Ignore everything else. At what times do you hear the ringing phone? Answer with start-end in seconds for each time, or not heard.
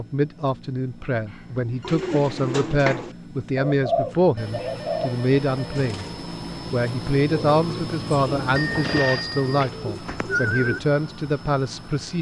1.2-2.2, 4.2-5.9, 8.6-9.7.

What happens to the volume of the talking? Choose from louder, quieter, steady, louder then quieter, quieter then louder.
steady.